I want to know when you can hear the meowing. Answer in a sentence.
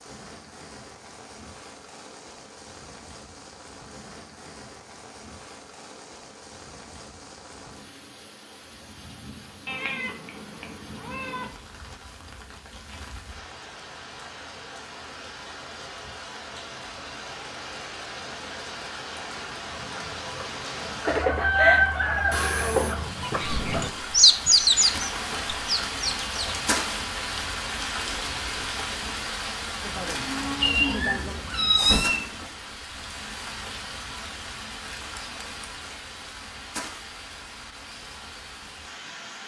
You can hear the meowing from 9.7 to 11.5 s, from 22.3 to 22.9 s and from 30.6 to 32.2 s.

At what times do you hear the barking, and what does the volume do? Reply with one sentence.
You can't hear the barking here.